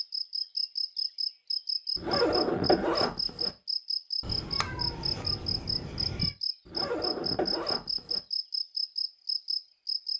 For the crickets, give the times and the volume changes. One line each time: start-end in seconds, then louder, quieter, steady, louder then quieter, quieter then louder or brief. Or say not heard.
0.0-10.1 steady.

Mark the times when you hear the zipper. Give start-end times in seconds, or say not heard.
1.9-3.5, 6.7-8.2.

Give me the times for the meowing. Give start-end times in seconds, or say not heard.
4.2-6.3.